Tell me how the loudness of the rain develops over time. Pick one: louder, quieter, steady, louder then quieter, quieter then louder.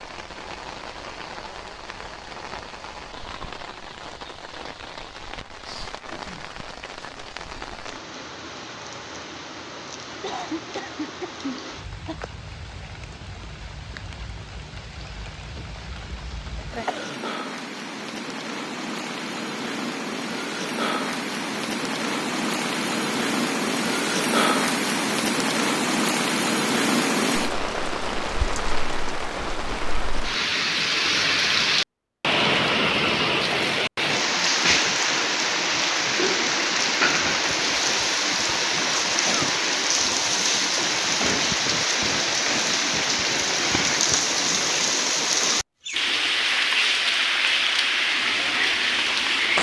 louder.